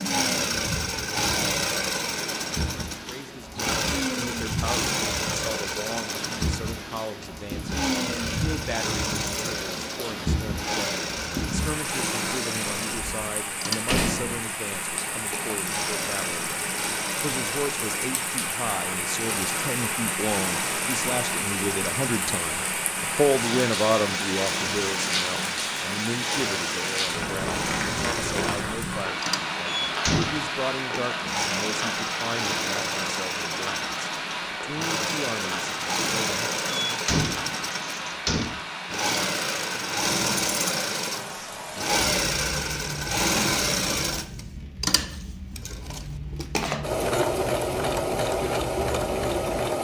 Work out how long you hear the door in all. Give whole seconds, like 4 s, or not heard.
4 s.